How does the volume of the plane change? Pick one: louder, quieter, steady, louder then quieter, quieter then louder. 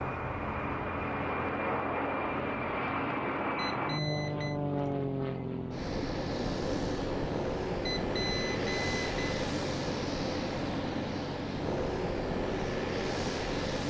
steady.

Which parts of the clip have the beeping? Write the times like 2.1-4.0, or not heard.
3.5-4.6, 7.8-9.2.